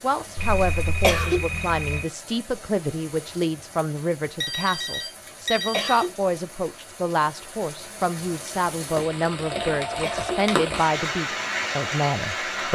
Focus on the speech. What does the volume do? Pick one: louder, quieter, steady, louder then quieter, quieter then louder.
steady.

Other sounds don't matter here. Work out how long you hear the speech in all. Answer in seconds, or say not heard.
13 s.